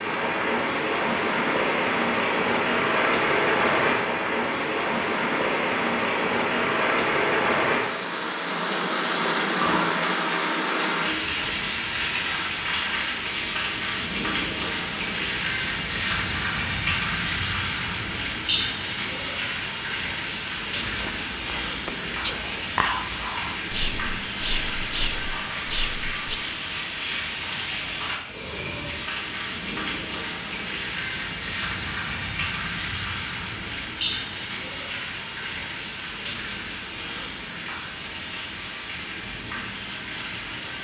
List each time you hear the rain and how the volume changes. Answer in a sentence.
You can hear the rain from 0.0 to 40.8 s, getting quieter.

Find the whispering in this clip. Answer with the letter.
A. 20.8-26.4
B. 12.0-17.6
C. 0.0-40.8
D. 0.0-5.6
A.